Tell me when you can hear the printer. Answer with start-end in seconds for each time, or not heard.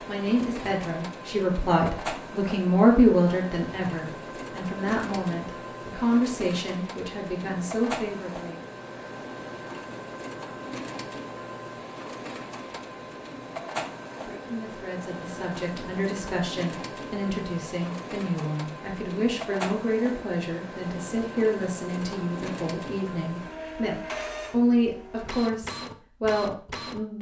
0.0-27.0.